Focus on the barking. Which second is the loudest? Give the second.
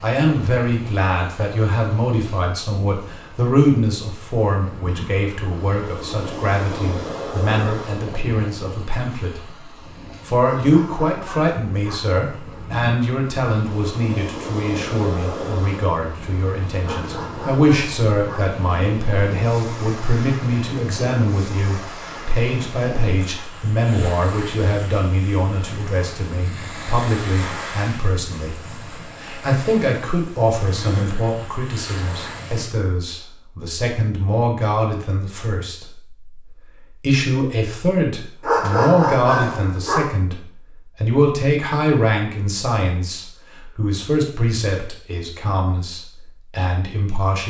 39 s.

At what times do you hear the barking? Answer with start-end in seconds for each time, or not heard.
10.4-11.9, 16.8-18.4, 38.4-40.0.